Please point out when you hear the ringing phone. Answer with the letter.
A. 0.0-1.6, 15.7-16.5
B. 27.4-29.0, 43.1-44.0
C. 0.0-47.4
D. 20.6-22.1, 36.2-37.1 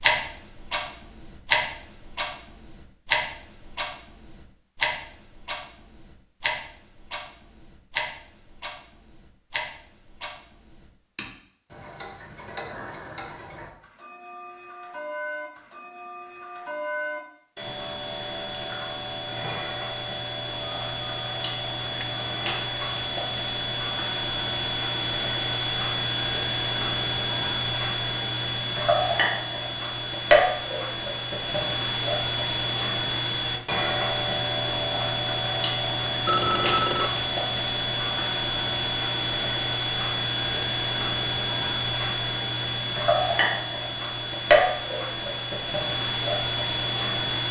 D.